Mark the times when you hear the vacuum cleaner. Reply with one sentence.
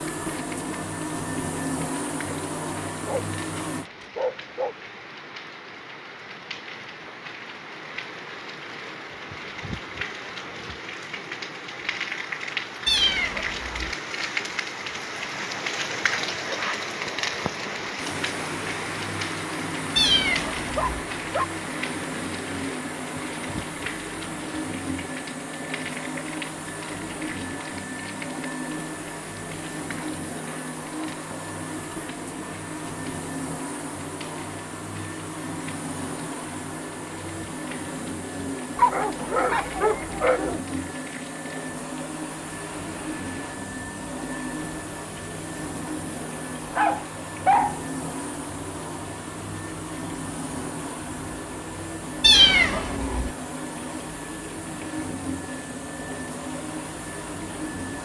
The vacuum cleaner can be heard from 0.0 to 3.9 s and from 17.9 to 58.0 s.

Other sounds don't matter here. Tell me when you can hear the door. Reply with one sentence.
The door can't be heard in this clip.